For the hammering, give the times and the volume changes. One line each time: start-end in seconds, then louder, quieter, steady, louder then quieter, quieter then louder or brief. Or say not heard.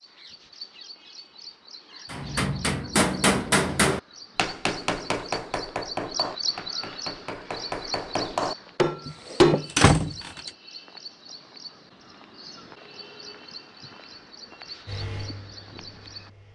2.1-9.7 quieter then louder.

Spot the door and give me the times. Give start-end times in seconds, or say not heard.
9.1-10.5.